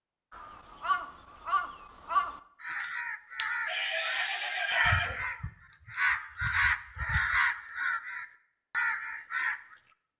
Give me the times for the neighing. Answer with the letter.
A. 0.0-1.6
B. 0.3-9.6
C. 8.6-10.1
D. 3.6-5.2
D.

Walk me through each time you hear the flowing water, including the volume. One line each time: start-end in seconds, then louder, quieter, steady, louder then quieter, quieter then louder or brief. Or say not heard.
not heard.